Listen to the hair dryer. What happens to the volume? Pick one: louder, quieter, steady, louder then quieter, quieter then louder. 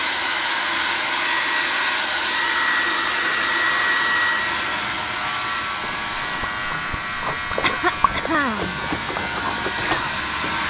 quieter.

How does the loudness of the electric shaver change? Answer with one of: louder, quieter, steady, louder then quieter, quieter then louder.
louder.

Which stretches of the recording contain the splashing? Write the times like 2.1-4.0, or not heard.
5.8-10.6.